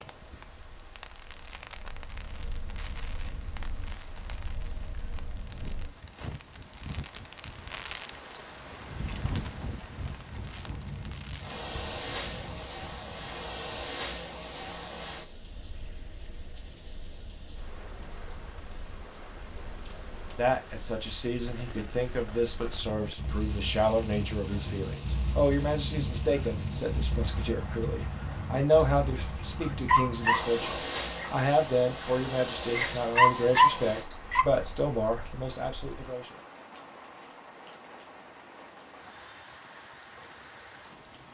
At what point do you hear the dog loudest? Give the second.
34 s.